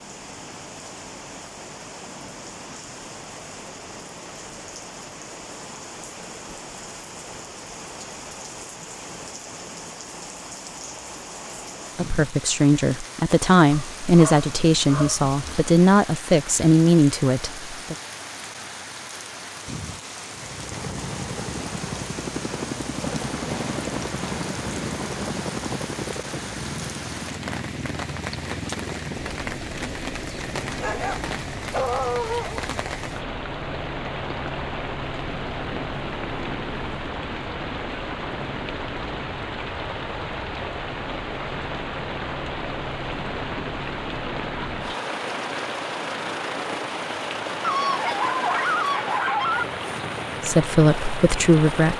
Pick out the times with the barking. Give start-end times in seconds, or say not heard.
13.7-15.8, 30.3-32.6, 47.6-49.6.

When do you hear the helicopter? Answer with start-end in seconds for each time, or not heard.
20.3-51.9.